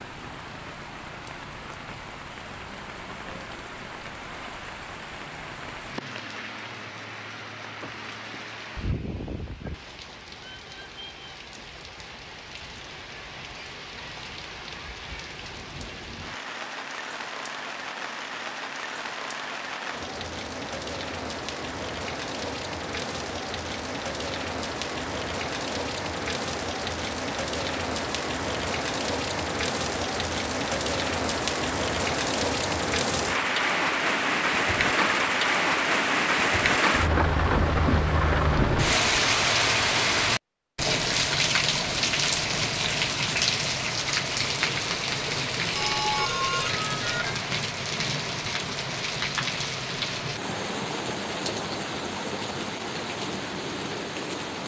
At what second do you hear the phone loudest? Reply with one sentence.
The volume of the phone peaks at 46 seconds.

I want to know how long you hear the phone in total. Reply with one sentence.
You can hear the phone for 2 seconds altogether.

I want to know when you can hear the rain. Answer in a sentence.
You can hear the rain from 0.0 to 54.6 s.